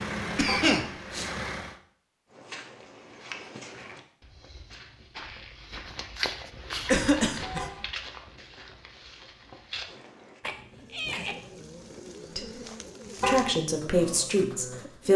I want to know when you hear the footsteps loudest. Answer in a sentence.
The loudest moment of the footsteps is at 6 seconds.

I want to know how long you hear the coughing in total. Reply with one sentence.
The coughing can be heard for 3 seconds in total.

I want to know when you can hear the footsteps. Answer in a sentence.
The footsteps can be heard from 2.3 to 10.4 s.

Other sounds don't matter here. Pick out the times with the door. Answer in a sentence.
The door can't be heard in this clip.